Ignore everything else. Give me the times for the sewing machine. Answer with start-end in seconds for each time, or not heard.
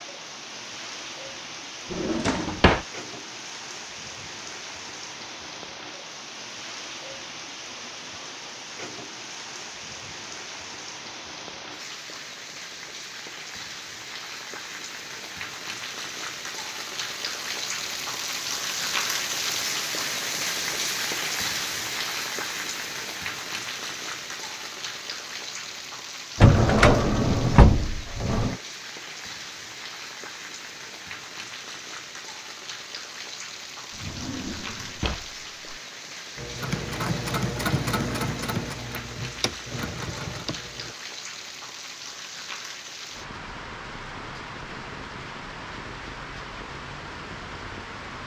36.4-41.0.